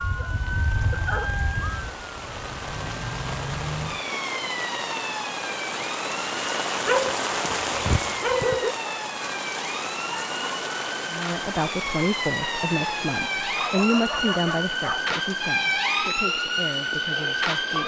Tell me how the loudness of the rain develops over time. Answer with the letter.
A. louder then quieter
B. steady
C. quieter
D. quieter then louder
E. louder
A.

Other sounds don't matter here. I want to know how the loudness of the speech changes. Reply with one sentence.
The loudness of the speech goes down.